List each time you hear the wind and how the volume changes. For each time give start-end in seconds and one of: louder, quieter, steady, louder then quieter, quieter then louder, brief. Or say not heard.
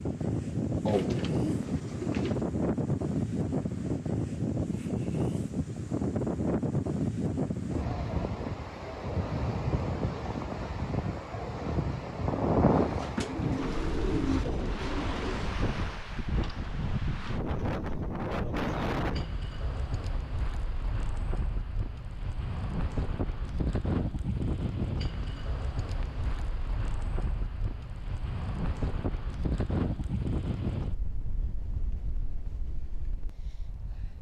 0.0-34.1 quieter.